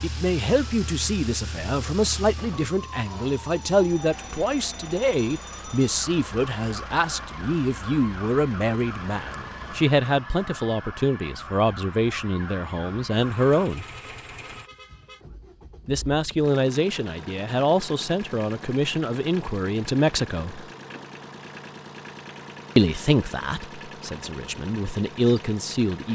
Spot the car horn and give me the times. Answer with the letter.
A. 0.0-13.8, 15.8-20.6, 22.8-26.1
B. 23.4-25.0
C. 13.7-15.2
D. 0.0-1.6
C.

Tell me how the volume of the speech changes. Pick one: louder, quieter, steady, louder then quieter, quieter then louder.
steady.